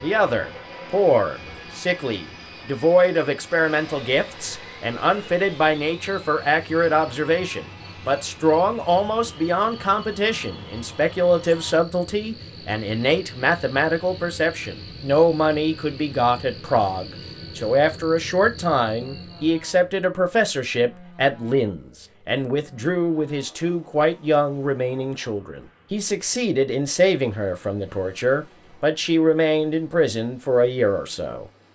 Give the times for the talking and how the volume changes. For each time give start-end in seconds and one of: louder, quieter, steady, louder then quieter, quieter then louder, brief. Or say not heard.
0.0-31.4 steady.